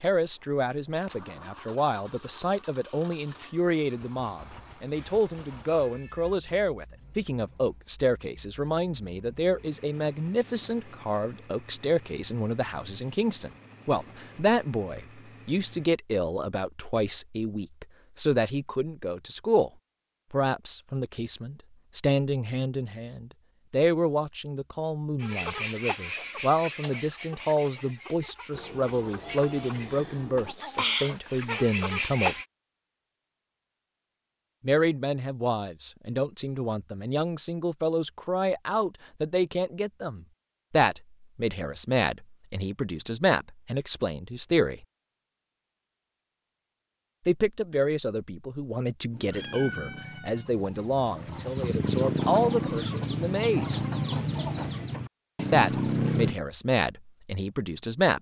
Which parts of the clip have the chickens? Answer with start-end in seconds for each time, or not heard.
25.2-32.5, 49.1-56.4.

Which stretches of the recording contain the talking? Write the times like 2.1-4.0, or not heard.
0.0-19.7, 20.3-32.4, 34.6-44.9, 47.2-53.8, 55.5-58.1.